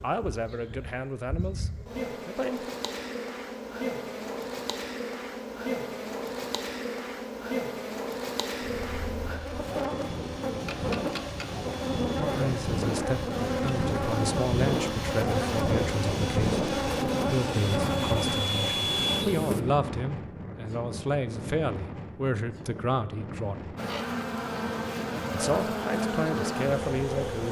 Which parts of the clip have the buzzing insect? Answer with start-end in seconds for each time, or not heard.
0.0-19.6, 23.8-27.4.